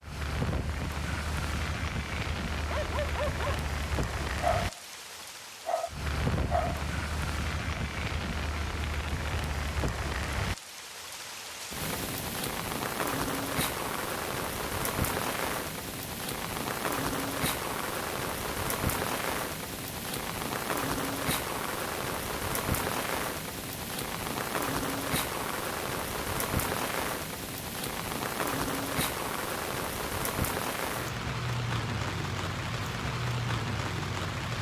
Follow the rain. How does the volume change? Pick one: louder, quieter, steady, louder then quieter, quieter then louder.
steady.